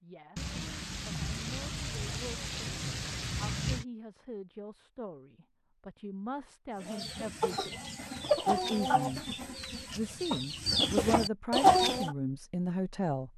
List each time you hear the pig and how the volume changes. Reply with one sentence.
The pig can't be heard in this clip.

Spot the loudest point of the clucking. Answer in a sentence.
The loudest moment of the clucking is at 12 seconds.